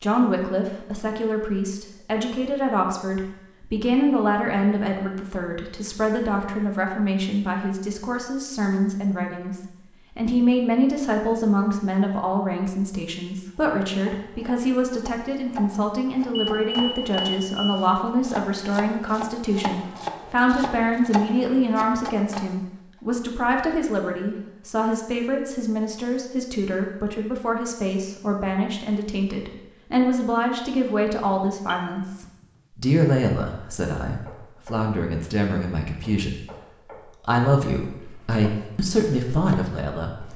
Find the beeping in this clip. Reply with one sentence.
The beeping can be heard from 16.4 to 17.8 s and from 31.6 to 32.5 s.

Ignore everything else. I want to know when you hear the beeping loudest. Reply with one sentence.
The volume of the beeping peaks at 17 seconds.